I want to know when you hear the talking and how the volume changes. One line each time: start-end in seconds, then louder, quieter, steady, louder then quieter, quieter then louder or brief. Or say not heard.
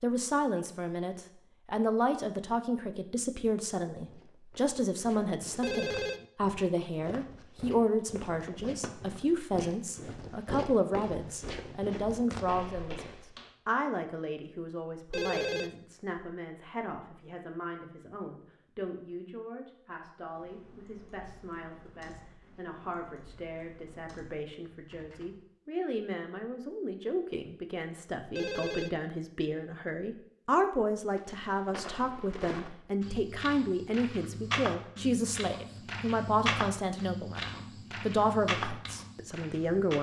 0.0-39.9 quieter then louder.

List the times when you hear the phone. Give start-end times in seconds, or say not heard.
5.6-6.2, 15.1-15.8, 28.4-29.0.